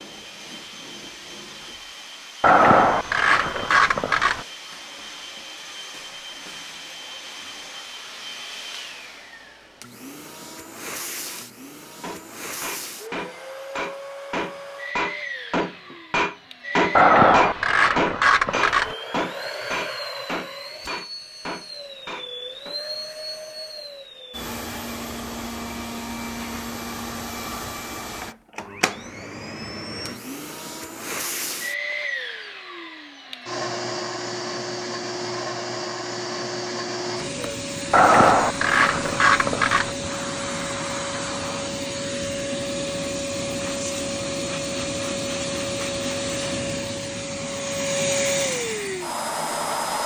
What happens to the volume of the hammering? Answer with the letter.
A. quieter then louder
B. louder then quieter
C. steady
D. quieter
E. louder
B.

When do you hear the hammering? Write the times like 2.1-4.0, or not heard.
11.2-22.8.